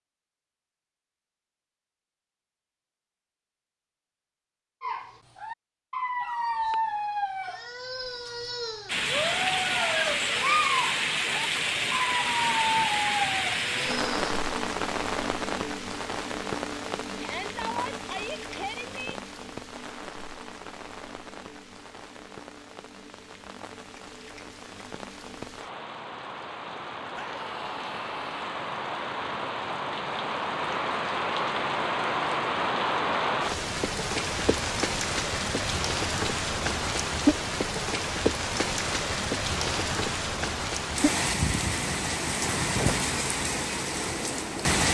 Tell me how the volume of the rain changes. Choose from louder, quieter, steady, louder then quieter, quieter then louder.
quieter then louder.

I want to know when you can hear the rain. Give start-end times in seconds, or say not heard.
8.8-44.8.